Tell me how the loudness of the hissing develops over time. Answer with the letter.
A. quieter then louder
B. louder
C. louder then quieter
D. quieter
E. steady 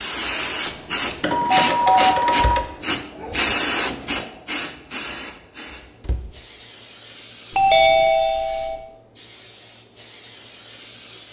D.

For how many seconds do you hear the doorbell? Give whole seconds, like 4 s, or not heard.
3 s.